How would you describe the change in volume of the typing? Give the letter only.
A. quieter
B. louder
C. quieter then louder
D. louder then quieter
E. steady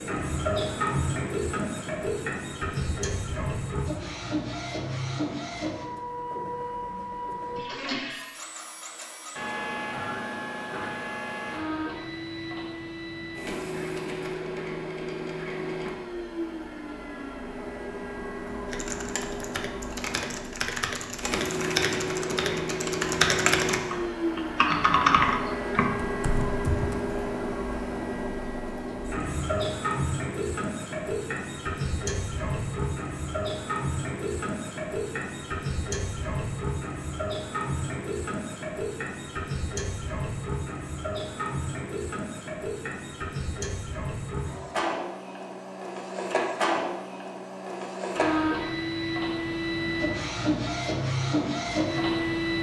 B.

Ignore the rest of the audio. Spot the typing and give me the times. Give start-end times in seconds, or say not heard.
18.6-26.9.